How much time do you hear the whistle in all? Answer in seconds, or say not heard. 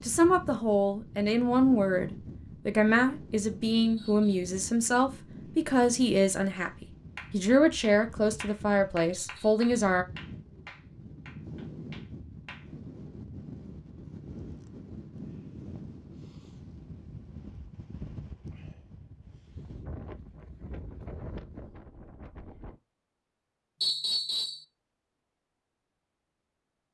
2 s.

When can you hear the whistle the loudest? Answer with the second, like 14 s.
24 s.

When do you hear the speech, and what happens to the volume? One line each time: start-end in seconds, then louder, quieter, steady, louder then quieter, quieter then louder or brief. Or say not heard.
0.0-10.1 steady.